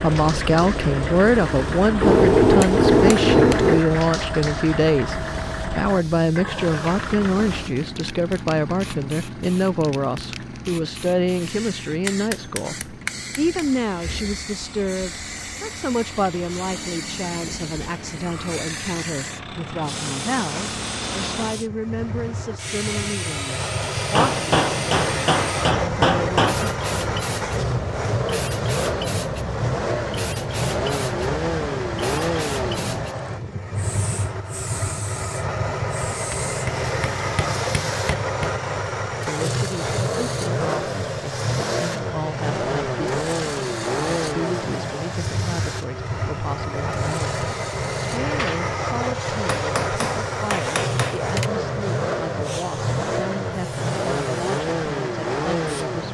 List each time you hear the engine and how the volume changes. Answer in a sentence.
The engine can be heard from 0.0 to 56.0 s, getting quieter then louder.